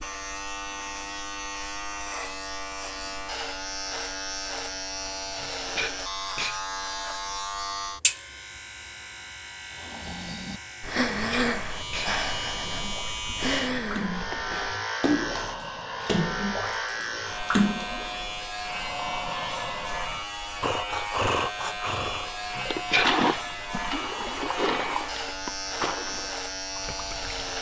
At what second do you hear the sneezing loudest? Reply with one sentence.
The loudest moment of the sneezing is at 23 seconds.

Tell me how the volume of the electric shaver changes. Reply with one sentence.
The loudness of the electric shaver stays about the same.